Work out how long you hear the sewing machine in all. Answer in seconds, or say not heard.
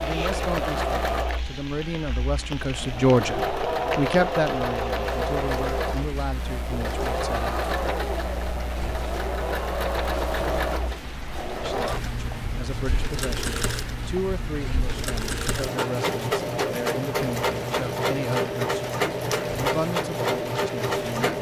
21 s.